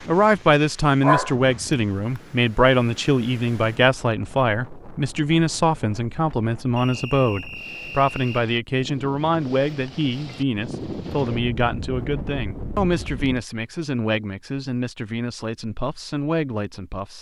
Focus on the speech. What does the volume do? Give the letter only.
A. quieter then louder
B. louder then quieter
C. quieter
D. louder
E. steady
C.